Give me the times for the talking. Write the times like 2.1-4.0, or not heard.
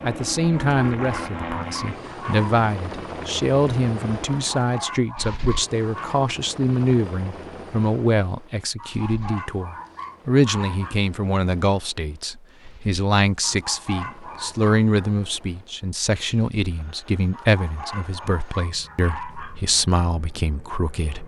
0.0-21.2.